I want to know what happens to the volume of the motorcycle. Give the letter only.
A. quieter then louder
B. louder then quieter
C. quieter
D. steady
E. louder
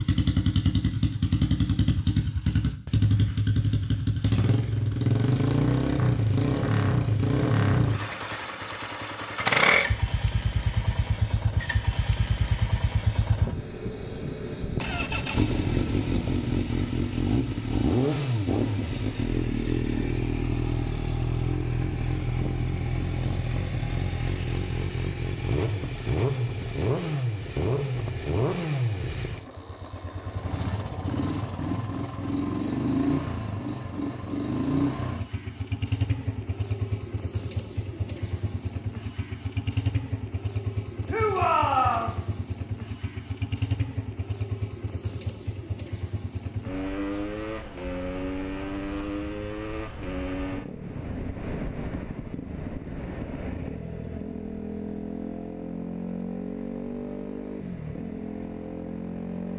C.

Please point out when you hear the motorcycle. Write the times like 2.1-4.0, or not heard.
0.0-59.5.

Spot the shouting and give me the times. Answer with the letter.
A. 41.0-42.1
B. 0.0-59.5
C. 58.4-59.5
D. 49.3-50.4
A.